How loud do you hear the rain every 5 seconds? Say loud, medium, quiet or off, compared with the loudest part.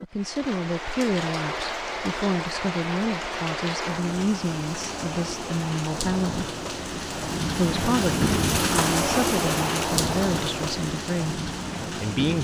medium, loud, loud.